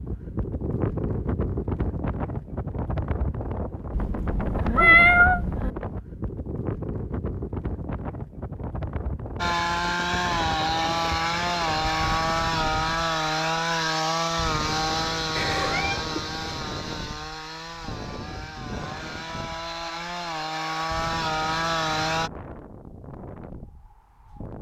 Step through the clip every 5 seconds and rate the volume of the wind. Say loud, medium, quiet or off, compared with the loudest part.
loud, loud, medium, medium, medium.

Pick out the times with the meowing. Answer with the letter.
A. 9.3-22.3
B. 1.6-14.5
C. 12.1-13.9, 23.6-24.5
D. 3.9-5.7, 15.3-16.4
D.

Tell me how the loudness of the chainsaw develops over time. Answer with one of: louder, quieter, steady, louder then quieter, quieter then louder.
quieter then louder.